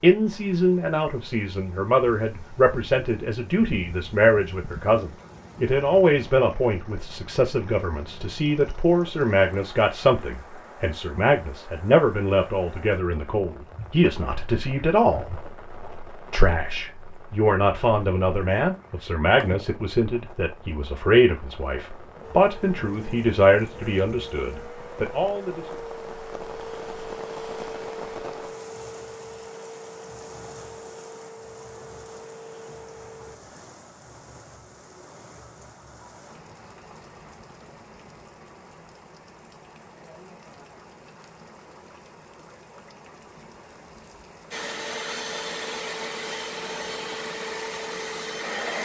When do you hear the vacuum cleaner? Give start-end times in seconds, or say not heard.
22.2-33.4, 44.5-48.7.